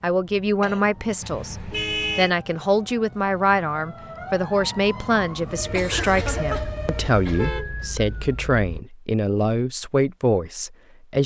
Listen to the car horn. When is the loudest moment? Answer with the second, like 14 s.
2 s.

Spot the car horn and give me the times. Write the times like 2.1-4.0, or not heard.
1.2-2.3, 6.8-8.8.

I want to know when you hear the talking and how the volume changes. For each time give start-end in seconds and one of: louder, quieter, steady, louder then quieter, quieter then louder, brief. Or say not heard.
0.0-11.2 steady.